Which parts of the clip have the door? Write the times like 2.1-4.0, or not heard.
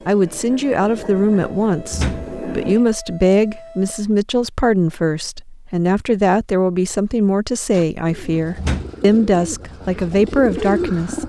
1.9-2.8, 8.6-9.4.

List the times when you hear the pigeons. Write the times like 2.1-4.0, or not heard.
7.7-11.2.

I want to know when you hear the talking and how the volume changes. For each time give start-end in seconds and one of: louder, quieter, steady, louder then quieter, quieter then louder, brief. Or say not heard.
0.1-11.2 steady.